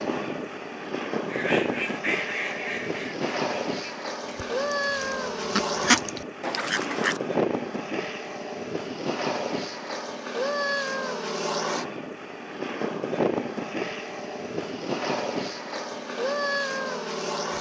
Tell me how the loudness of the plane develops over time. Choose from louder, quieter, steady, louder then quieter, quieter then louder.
steady.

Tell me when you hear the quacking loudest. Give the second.
6 s.